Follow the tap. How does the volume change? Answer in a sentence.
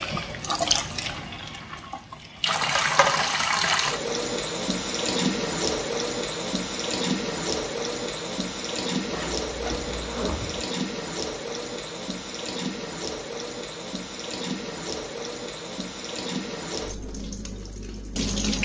The loudness of the tap goes down.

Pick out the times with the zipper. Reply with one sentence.
The zipper can be heard from 9.1 to 10.7 s.